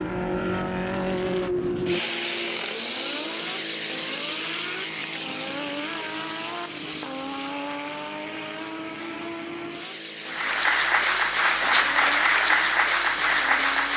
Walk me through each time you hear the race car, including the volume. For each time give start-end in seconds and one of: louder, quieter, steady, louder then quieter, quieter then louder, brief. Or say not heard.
0.0-13.9 quieter.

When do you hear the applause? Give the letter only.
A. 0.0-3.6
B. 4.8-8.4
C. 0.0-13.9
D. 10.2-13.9
D.